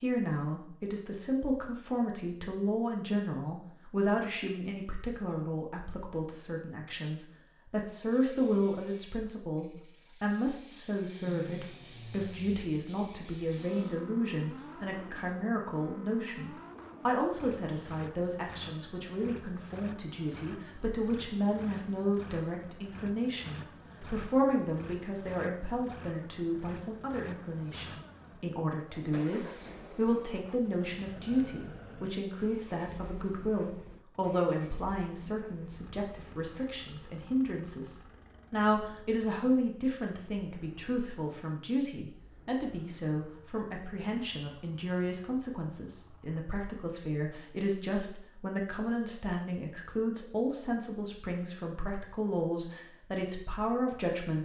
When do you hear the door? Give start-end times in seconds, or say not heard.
not heard.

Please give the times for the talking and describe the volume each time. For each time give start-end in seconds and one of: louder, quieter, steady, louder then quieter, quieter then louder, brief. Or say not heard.
0.0-54.4 steady.